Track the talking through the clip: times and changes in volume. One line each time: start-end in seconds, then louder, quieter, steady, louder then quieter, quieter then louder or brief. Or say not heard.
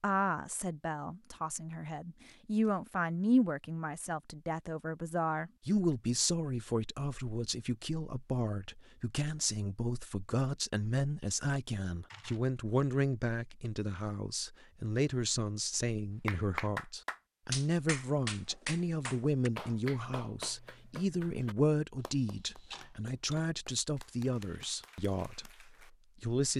0.0-26.5 steady.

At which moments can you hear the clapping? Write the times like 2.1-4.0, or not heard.
16.2-25.9.